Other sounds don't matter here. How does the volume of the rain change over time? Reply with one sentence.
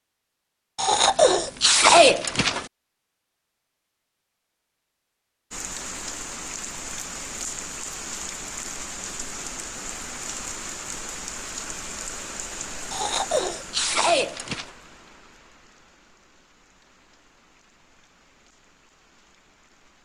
The loudness of the rain goes down.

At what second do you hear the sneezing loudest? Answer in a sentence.
The loudest moment of the sneezing is at 2 seconds.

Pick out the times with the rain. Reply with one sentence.
You can hear the rain from 5.5 to 19.9 s.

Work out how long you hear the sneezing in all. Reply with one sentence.
You can hear the sneezing for 4 seconds altogether.